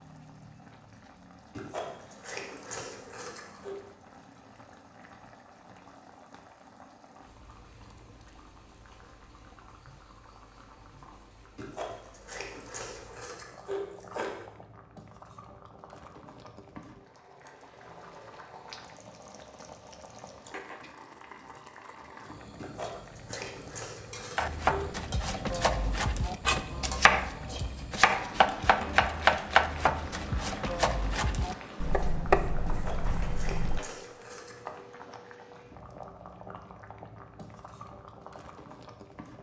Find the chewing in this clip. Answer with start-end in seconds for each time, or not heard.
1.6-3.8, 11.6-14.3, 22.6-25.1, 32.6-34.8.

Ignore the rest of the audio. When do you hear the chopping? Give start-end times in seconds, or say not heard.
24.4-33.8.